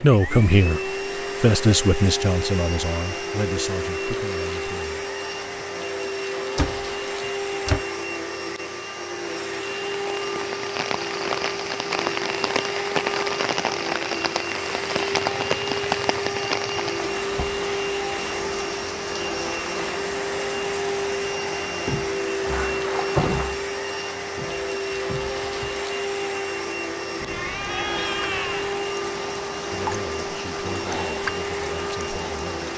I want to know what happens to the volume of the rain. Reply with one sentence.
The volume of the rain goes down, then up.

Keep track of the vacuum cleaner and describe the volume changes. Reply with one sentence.
The volume of the vacuum cleaner stays about the same.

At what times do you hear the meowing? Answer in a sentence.
The meowing can be heard from 27.1 to 28.8 s.